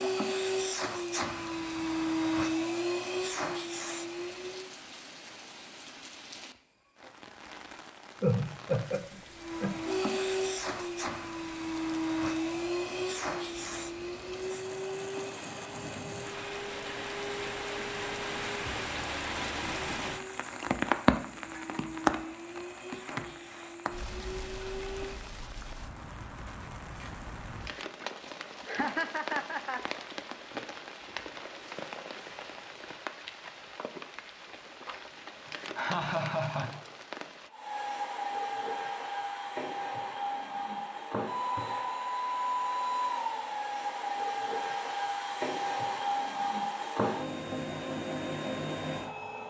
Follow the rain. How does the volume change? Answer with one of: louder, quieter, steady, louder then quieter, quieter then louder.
louder then quieter.